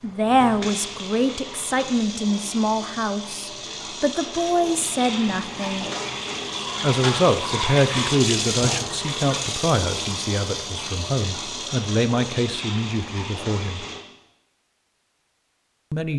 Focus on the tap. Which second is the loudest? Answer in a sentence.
The loudest moment of the tap is at 8 seconds.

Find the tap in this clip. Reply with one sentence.
The tap can be heard from 0.0 to 14.1 s.